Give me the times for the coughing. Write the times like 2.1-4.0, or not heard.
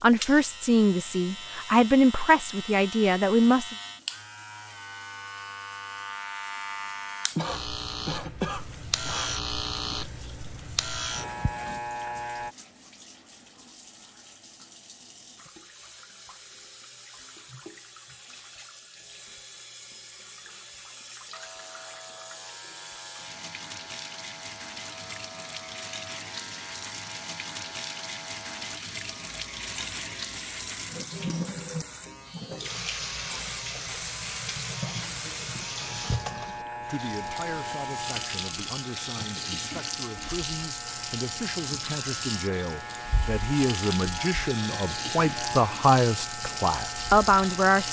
7.3-9.3.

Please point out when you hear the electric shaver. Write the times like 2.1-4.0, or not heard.
0.0-12.6, 21.3-47.8.